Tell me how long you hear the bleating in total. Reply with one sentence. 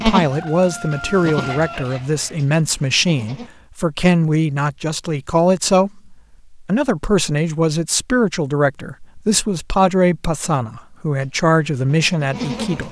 The bleating can be heard for 5 seconds in total.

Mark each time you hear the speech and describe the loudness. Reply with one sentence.
The speech can be heard from 0.0 to 12.8 s, at a steady volume.